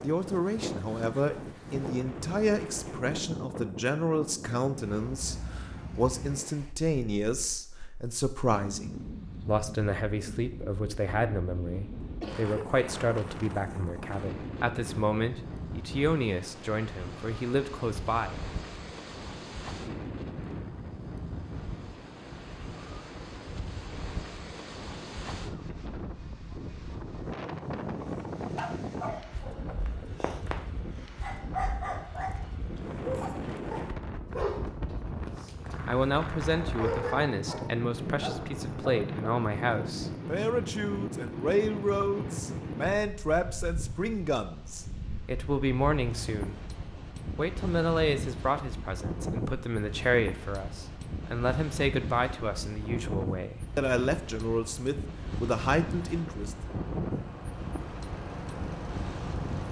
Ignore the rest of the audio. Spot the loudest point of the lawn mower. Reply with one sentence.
The volume of the lawn mower peaks at 59 seconds.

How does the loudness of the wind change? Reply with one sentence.
The loudness of the wind stays about the same.